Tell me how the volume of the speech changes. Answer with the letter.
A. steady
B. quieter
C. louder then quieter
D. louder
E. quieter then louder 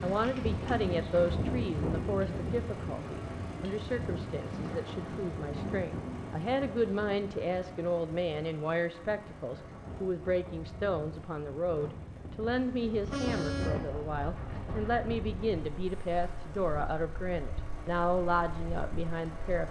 A.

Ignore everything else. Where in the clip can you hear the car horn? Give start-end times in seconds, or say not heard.
12.5-13.8.